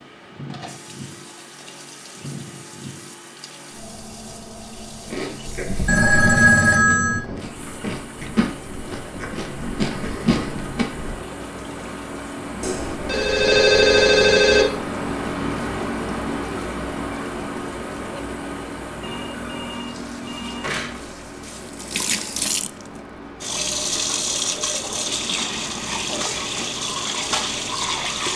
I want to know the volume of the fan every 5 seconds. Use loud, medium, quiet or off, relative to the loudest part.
medium, medium, loud, loud, medium, medium.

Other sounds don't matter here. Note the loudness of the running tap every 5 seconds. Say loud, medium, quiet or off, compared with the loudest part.
quiet, quiet, quiet, quiet, loud, loud.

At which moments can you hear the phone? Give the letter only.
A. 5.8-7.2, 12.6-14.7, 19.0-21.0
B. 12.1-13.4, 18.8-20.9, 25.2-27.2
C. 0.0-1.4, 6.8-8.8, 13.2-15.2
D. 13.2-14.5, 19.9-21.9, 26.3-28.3
A.